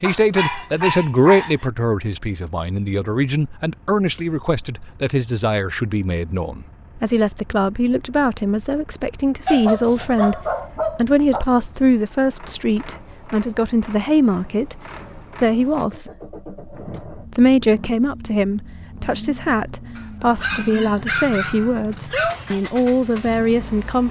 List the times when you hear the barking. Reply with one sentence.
You can hear the barking from 0.0 to 1.7 s, from 9.4 to 11.4 s and from 19.9 to 22.4 s.